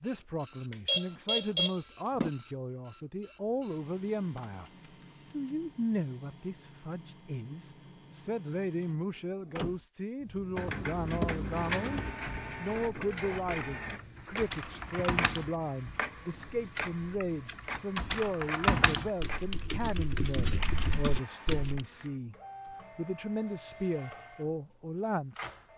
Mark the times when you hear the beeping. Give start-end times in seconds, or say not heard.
0.7-2.3.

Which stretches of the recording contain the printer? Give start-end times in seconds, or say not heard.
0.0-25.7.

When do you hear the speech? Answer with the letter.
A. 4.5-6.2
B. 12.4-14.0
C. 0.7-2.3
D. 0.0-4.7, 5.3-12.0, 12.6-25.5
D.